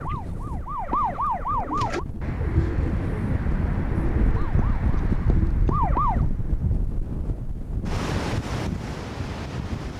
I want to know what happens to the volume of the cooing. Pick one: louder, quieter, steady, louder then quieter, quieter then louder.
quieter.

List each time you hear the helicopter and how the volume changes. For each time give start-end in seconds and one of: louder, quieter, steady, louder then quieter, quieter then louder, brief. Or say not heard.
not heard.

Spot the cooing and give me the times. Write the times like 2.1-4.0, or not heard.
1.4-6.7.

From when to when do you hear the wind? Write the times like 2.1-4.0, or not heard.
0.0-9.9.